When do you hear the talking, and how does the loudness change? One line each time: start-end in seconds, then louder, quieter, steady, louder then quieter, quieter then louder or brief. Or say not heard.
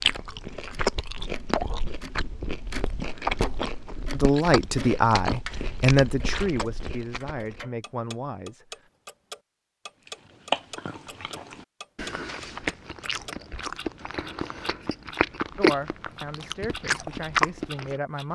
4.1-8.7 quieter
15.6-18.2 brief.